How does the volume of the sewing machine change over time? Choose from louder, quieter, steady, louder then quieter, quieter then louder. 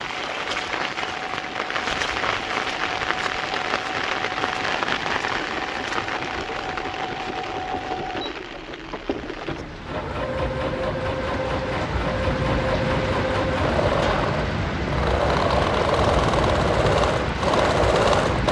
louder.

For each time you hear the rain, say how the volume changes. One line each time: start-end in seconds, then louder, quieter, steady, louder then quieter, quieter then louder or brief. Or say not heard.
0.0-18.4 quieter then louder.